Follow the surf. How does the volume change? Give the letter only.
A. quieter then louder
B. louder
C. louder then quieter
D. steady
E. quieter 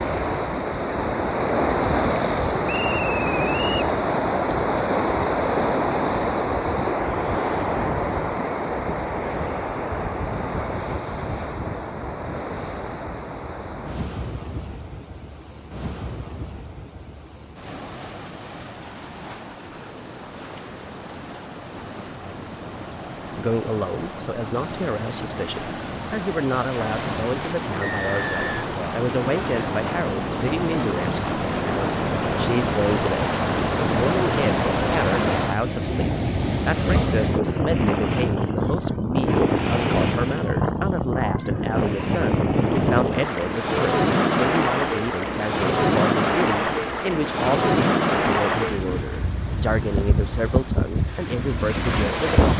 A.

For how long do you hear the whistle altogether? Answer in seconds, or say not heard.
2 s.